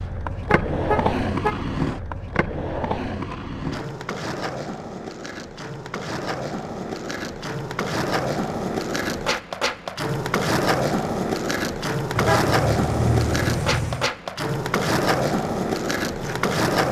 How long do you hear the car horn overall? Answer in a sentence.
You can hear the car horn for 3 seconds altogether.